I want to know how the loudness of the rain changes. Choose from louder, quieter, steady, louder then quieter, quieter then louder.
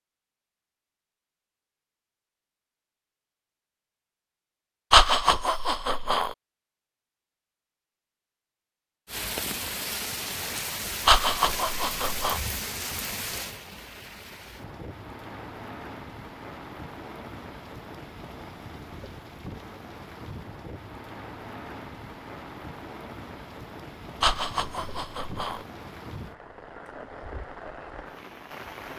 quieter.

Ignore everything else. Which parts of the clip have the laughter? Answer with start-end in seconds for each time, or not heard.
4.9-6.3, 11.1-12.4, 24.2-25.6.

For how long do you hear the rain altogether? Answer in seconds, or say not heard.
20 s.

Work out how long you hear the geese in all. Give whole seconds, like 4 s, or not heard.
not heard.